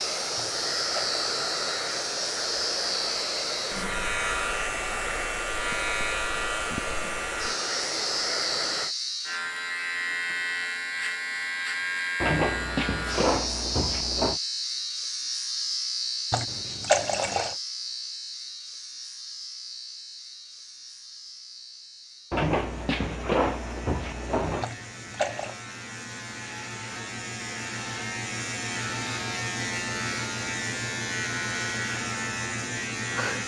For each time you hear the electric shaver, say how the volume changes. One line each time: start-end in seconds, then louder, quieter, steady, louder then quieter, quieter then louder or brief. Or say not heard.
0.0-33.4 quieter then louder.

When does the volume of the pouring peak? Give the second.
17 s.